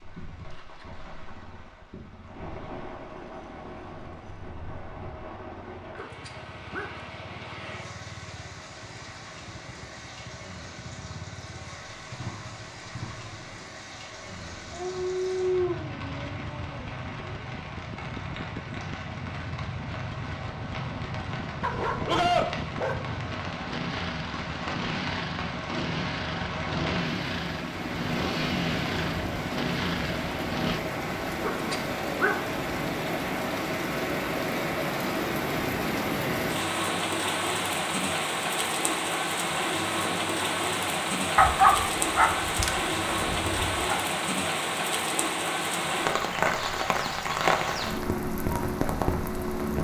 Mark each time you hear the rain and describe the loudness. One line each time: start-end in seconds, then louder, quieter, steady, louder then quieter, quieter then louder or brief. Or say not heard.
0.0-49.7 louder.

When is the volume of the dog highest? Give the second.
42 s.